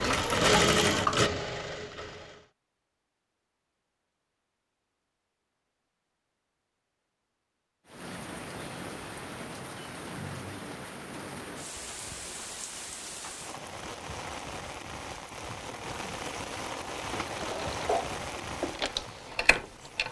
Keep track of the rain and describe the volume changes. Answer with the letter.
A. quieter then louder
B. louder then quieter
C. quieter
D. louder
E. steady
E.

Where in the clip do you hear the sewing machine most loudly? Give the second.
1 s.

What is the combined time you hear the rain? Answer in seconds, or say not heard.
12 s.